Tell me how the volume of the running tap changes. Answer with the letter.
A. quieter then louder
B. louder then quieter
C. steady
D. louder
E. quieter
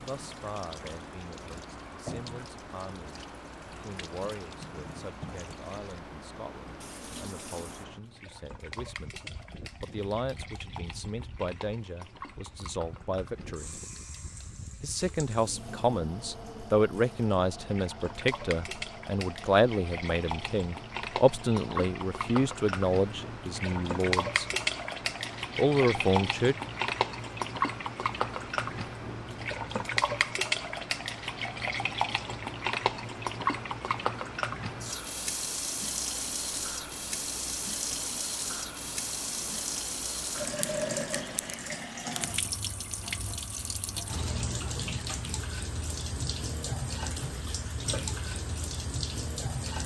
D.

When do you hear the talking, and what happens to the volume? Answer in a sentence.
The talking can be heard from 0.0 to 13.8 s, getting louder; from 14.8 to 24.4 s, at a steady volume; and briefly from 25.6 to 26.6 s.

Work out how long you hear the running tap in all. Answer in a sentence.
You can hear the running tap for 50 seconds altogether.